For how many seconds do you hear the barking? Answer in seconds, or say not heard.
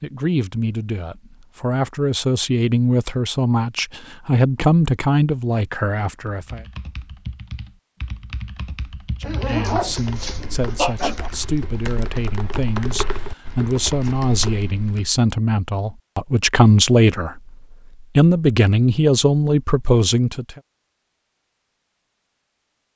2 s.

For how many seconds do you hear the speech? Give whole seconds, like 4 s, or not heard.
17 s.